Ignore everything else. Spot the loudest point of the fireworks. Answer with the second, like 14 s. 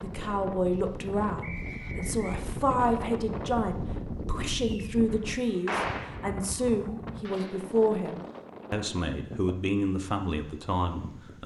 6 s.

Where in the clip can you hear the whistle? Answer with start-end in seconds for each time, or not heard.
1.4-2.4.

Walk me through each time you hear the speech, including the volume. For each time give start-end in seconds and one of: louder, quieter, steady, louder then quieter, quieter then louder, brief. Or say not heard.
0.0-11.4 steady.